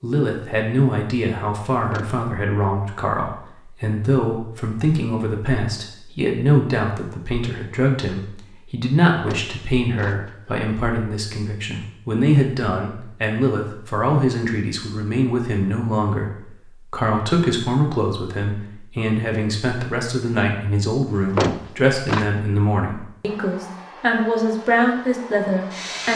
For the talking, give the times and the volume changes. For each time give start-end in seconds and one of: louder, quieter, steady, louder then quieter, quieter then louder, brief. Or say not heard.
0.0-26.1 steady.